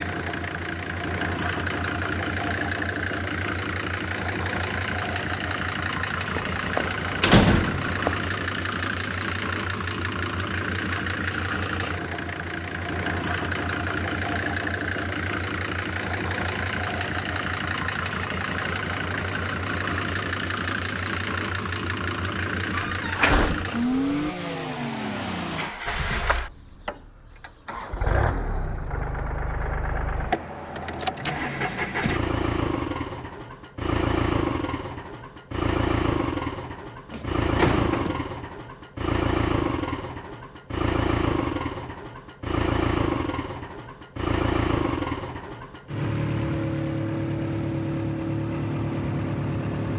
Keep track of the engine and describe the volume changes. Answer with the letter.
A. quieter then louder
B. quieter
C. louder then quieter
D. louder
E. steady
E.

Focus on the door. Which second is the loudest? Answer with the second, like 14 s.
7 s.